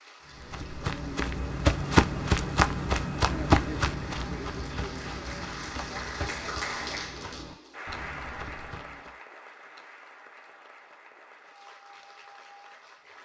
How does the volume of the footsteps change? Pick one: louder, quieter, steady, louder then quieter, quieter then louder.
quieter.